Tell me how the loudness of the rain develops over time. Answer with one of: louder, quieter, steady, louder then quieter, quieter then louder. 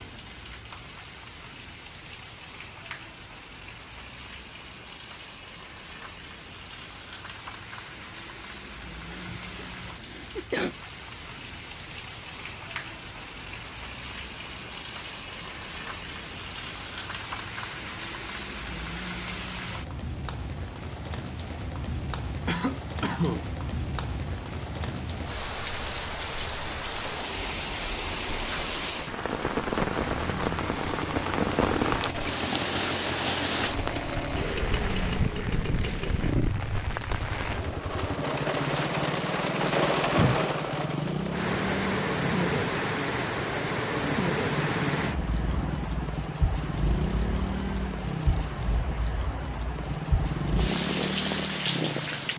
louder.